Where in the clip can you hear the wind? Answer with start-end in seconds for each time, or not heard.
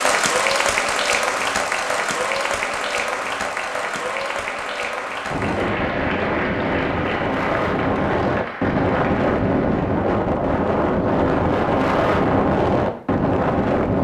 5.3-13.9.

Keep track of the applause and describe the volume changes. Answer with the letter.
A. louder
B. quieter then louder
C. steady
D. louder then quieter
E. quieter
E.